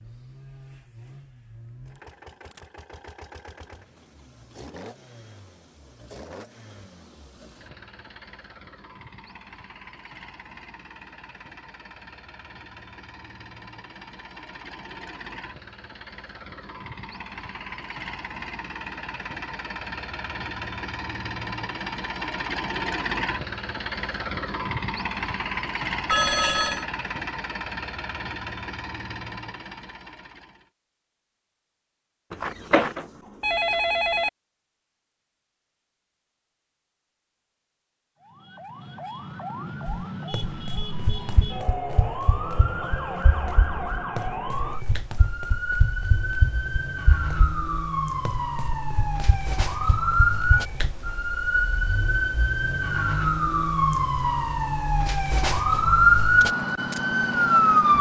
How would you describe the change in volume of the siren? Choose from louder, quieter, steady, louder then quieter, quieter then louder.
louder.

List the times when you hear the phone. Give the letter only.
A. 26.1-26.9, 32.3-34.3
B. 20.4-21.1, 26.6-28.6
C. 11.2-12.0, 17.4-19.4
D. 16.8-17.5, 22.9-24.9
A.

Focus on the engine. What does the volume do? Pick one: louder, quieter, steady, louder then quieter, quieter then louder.
louder.